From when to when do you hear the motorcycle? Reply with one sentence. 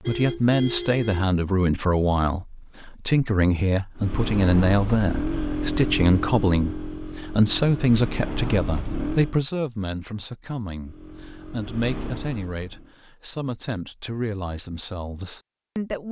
You can hear the motorcycle from 4.0 to 9.3 s and from 10.8 to 12.9 s.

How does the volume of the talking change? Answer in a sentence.
The volume of the talking goes down.